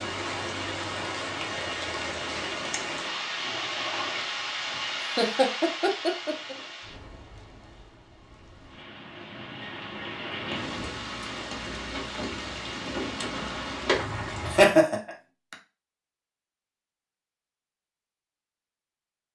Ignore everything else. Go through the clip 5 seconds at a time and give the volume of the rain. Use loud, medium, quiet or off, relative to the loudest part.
loud, medium, loud, off.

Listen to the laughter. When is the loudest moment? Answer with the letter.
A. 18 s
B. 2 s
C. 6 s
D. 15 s
D.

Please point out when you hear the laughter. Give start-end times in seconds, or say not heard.
5.2-6.5, 14.4-15.6.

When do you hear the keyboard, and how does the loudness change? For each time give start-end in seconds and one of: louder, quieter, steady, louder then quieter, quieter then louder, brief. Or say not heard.
not heard.